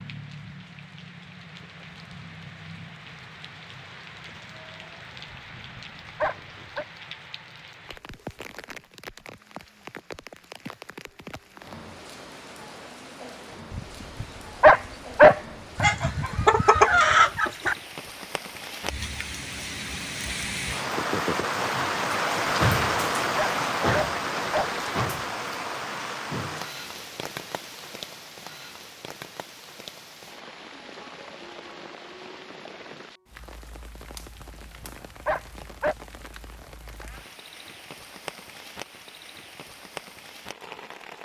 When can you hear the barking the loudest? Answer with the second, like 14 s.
15 s.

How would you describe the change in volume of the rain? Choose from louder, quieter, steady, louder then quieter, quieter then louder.
louder then quieter.